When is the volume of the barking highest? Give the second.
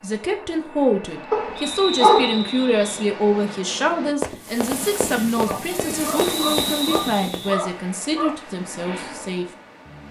2 s.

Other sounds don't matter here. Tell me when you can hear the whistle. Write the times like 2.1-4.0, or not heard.
1.6-2.8, 6.2-7.7.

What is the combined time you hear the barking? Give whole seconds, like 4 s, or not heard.
4 s.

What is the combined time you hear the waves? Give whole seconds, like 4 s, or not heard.
6 s.